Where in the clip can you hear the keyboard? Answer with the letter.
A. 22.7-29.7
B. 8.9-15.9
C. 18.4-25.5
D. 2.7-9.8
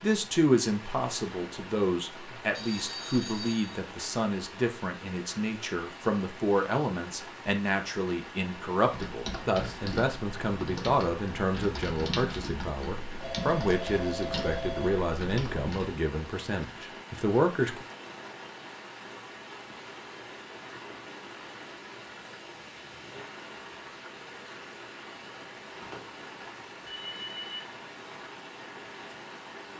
B.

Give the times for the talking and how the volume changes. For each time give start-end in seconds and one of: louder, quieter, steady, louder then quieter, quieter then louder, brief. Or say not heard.
0.0-17.9 steady.